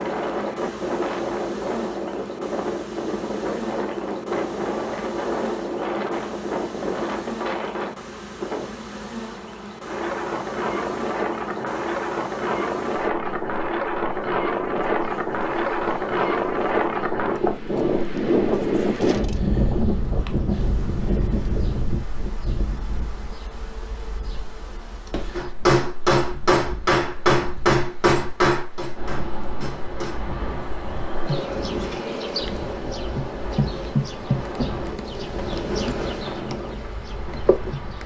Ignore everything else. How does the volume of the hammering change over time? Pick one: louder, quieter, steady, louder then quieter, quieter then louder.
quieter.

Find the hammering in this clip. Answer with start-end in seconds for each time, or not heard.
25.4-30.2.